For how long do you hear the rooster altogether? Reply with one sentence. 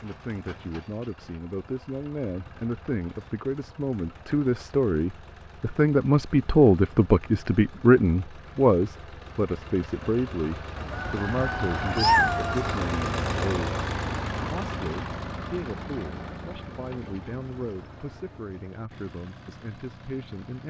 You can hear the rooster for 2 seconds altogether.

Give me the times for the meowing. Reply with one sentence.
The meowing can be heard from 11.9 to 12.7 s.